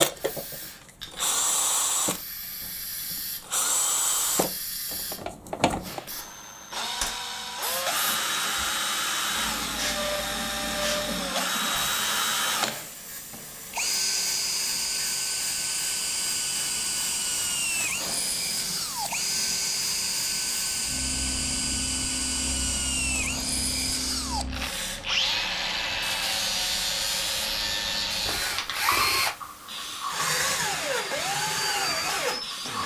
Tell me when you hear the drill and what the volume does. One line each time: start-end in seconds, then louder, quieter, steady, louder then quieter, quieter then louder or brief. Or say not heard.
0.0-32.8 steady.